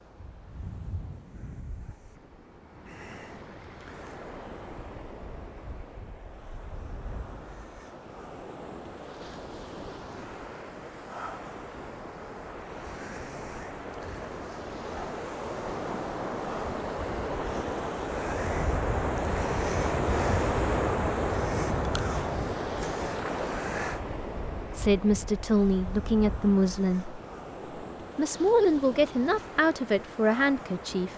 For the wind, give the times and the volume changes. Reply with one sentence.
The wind can be heard from 0.0 to 31.1 s, getting louder then quieter.